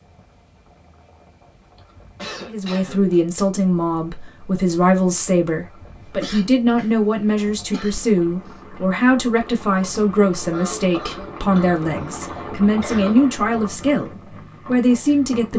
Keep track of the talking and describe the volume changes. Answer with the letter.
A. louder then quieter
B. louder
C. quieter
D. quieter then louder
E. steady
E.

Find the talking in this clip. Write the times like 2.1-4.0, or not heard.
2.5-15.5.